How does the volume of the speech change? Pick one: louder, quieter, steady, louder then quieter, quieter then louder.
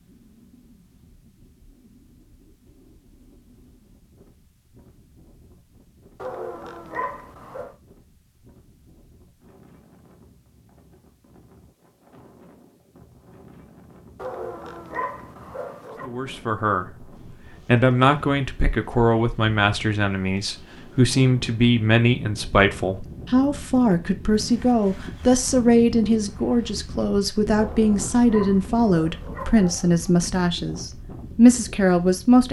steady.